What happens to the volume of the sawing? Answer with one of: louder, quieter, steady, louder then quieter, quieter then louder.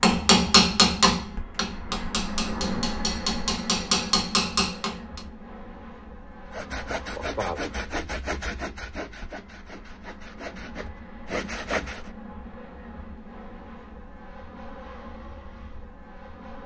quieter then louder.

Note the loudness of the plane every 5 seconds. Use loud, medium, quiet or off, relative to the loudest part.
loud, medium, medium, medium.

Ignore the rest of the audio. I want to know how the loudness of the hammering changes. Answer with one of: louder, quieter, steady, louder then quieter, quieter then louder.
quieter then louder.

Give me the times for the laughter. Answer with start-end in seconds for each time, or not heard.
not heard.